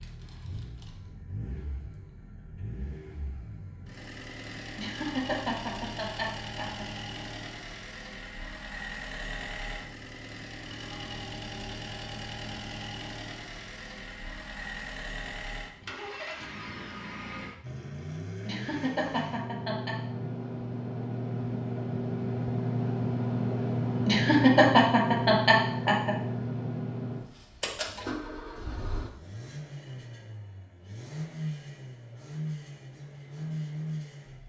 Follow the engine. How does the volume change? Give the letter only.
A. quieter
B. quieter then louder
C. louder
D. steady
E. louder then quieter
E.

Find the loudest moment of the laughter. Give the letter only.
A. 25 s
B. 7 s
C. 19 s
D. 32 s
A.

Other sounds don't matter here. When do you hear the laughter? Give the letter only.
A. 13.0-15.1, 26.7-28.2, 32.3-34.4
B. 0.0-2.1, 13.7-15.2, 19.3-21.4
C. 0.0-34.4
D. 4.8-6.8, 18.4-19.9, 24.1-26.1
D.